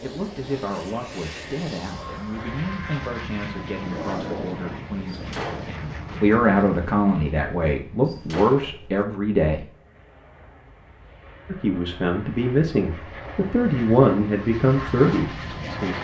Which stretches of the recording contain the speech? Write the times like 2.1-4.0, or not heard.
0.0-9.7, 11.5-15.9.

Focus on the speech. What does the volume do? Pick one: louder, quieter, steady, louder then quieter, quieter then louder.
louder.